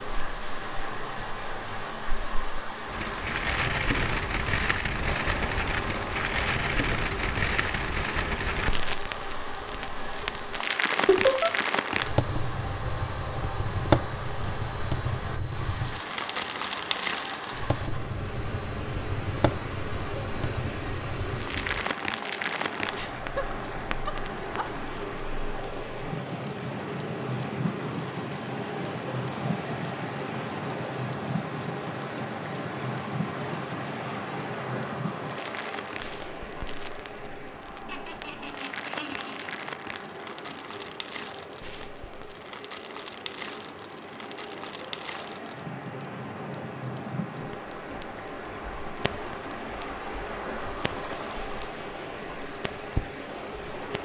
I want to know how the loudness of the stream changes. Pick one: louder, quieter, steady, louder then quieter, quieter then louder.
steady.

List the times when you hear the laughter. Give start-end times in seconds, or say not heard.
11.1-11.5, 22.9-24.6, 37.9-39.5.